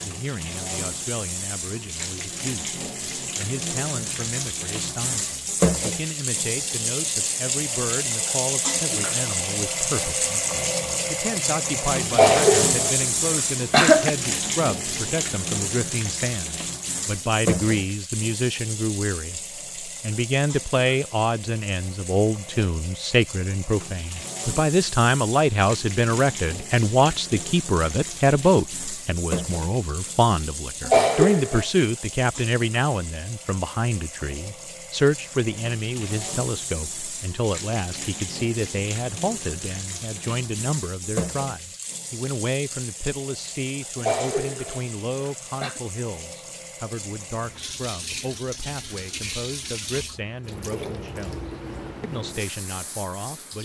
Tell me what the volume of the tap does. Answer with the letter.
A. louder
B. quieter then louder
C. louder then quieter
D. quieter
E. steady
D.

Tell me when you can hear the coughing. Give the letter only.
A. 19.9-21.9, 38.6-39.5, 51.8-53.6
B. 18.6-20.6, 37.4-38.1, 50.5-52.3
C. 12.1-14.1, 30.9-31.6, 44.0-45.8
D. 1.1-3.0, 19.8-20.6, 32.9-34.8
C.